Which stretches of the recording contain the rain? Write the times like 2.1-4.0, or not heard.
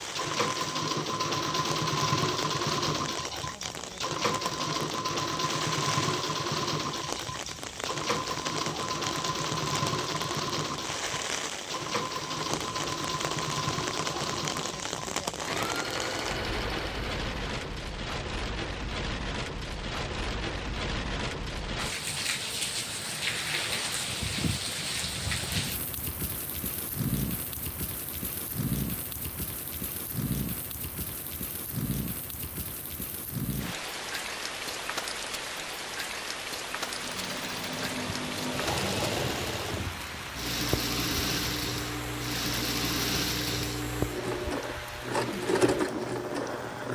0.0-46.9.